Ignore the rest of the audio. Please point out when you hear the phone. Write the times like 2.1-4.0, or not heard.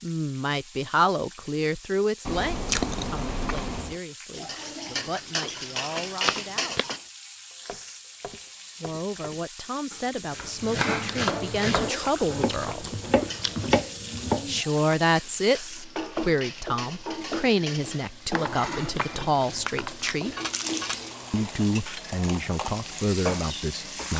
6.2-6.8, 18.4-19.1.